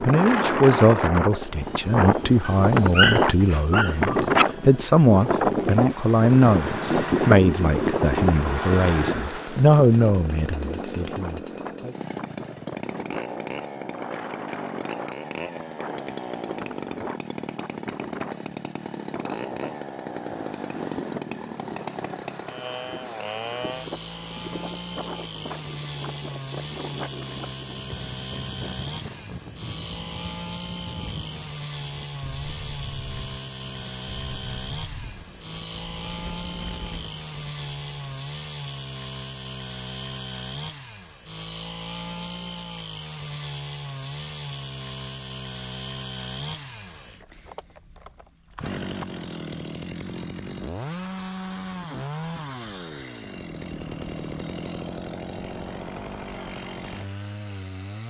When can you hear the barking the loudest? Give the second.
3 s.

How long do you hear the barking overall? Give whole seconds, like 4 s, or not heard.
2 s.